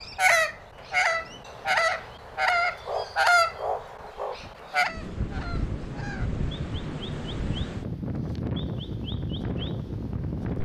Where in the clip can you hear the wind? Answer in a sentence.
The wind can be heard from 0.0 to 10.6 s.